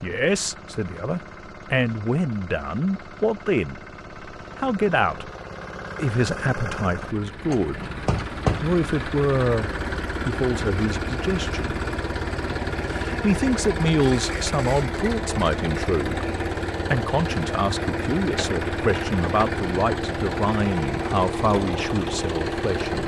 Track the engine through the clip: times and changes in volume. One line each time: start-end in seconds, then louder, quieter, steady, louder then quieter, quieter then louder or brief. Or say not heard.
0.0-23.0 louder.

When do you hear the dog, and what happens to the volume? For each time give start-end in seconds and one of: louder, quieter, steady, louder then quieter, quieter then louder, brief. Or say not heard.
not heard.